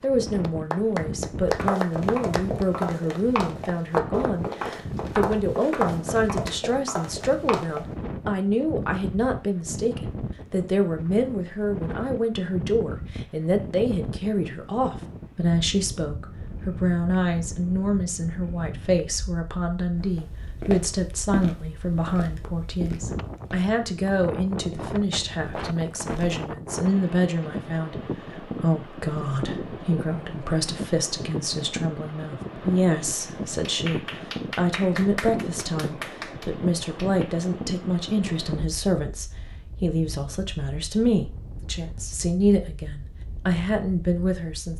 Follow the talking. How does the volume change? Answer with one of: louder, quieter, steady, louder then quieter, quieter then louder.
steady.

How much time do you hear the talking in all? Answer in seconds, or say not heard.
45 s.